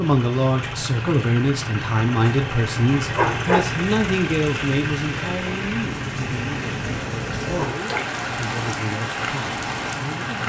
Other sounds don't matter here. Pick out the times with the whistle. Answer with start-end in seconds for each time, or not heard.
not heard.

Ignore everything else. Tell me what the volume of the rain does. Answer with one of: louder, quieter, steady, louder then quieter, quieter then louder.
louder.